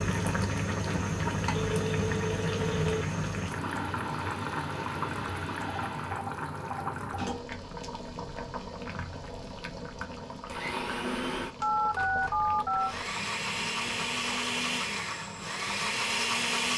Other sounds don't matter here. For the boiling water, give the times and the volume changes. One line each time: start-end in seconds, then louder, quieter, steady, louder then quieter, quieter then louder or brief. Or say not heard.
0.0-16.7 quieter.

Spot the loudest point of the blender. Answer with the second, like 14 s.
16 s.